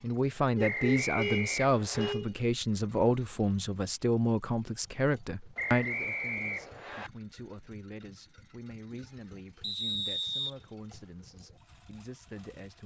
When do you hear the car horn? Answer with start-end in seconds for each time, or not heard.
0.6-2.3.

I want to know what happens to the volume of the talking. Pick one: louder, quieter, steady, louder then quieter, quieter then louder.
quieter.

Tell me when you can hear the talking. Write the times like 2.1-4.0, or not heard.
0.0-12.8.